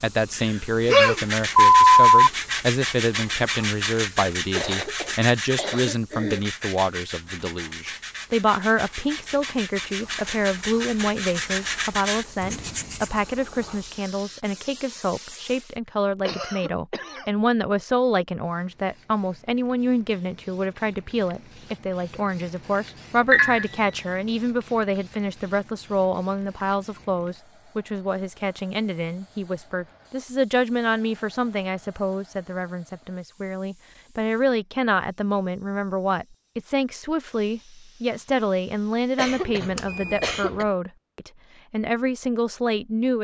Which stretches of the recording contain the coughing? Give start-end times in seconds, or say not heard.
4.5-6.5, 16.2-17.3, 39.1-40.6.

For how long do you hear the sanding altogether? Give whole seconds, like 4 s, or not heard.
12 s.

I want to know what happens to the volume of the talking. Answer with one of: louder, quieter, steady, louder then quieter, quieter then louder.
steady.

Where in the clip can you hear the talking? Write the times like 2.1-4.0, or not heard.
0.0-43.1.